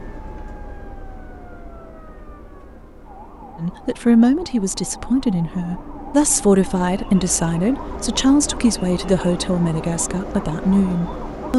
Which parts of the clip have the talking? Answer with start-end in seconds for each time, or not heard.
3.5-11.5.